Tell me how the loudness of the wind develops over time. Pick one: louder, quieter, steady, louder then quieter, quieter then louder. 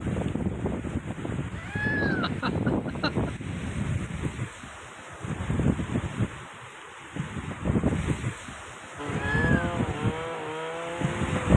steady.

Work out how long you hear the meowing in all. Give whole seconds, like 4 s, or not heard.
2 s.